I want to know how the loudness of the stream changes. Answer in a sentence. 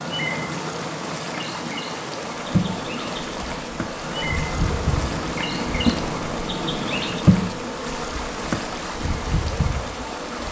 The volume of the stream stays about the same.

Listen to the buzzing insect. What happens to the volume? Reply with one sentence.
The volume of the buzzing insect goes up, then down.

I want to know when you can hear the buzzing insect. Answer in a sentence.
The buzzing insect can be heard from 2.3 to 10.4 s.